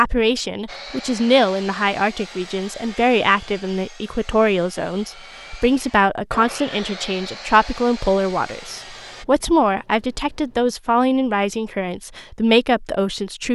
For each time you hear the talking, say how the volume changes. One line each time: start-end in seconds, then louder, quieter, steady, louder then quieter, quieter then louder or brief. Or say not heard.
0.0-13.5 steady.